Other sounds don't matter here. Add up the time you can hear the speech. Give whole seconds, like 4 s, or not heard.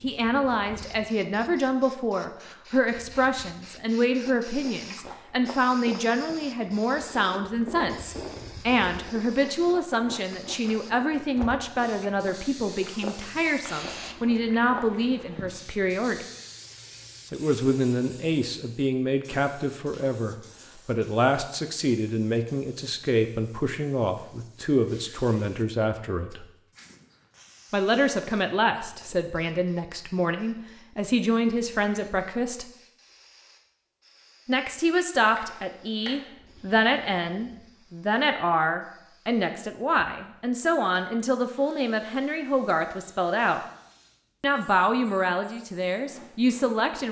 42 s.